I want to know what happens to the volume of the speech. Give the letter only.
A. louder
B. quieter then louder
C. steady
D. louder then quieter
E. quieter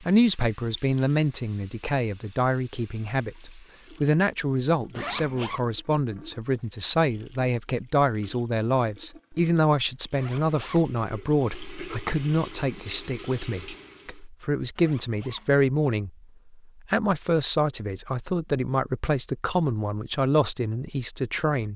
C.